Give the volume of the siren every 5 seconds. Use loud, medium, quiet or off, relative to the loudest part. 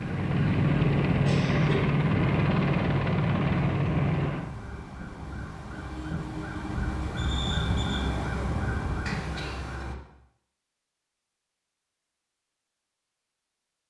medium, loud, off.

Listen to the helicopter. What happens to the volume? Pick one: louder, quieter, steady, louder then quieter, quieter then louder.
steady.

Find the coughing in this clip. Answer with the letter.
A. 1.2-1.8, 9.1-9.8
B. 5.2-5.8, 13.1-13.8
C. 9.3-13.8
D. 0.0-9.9
A.